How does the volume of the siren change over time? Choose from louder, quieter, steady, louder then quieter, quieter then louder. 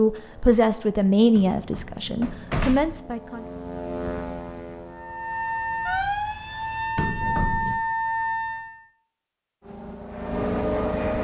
steady.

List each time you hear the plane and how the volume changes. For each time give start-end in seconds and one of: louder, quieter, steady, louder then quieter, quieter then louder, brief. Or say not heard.
0.0-5.9 louder then quieter
9.6-11.1 brief.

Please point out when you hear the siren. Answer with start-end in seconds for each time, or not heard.
4.8-8.8.